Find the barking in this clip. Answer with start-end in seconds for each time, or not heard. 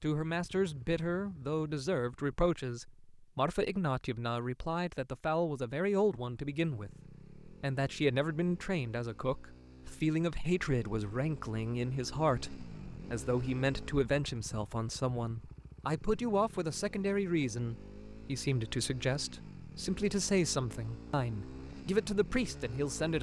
not heard.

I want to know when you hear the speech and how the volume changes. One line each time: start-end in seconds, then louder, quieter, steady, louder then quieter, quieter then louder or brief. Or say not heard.
0.0-23.1 steady.